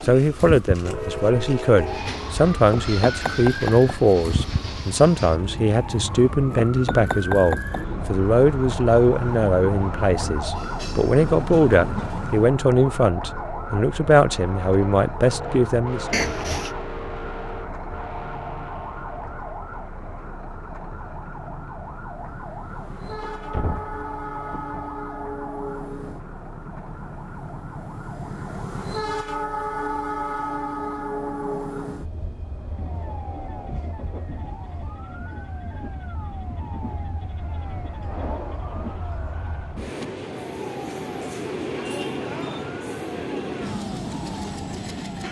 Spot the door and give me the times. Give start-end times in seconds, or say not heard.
16.1-16.7, 23.2-24.8.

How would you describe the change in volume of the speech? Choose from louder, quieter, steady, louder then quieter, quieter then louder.
steady.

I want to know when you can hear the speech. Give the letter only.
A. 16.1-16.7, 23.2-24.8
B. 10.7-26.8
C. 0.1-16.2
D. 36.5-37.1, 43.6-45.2
C.